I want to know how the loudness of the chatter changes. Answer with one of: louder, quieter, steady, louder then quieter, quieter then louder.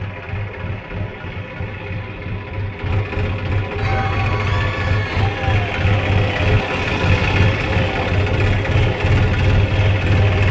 steady.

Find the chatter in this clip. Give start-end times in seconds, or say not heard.
3.8-10.4.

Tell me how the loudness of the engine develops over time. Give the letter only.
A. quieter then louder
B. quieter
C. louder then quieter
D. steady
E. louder
E.